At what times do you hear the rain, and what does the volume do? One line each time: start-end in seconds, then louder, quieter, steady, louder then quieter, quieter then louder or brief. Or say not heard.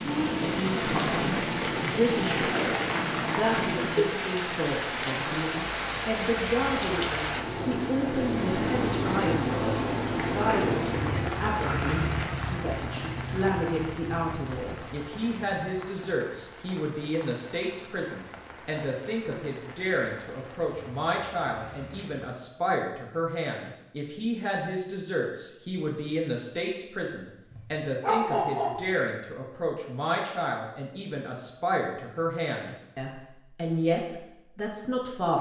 0.0-22.4 quieter.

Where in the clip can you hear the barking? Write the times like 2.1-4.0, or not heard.
27.5-28.8.